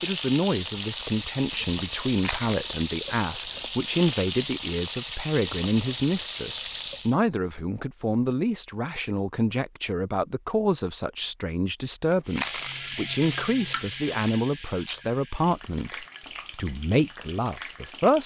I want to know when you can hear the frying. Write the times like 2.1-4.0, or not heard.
0.0-7.2, 12.2-18.2.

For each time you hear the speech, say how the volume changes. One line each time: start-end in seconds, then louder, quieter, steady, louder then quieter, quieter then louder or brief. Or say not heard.
0.0-18.2 steady.